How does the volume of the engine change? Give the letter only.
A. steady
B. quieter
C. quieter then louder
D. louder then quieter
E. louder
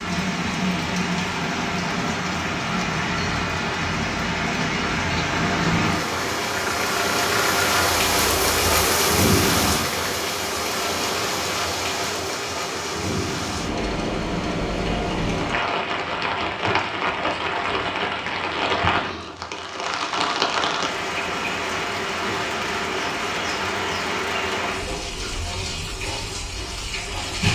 E.